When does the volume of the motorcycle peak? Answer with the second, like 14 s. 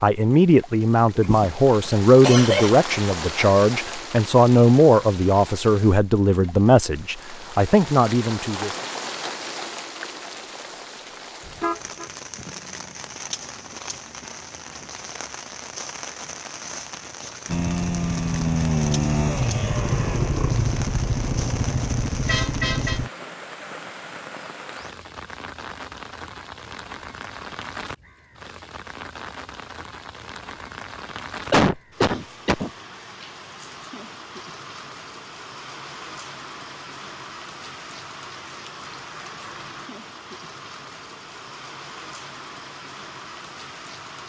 19 s.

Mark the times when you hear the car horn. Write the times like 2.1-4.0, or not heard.
11.4-12.1, 22.2-23.0.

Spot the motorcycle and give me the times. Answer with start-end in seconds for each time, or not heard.
17.4-23.1.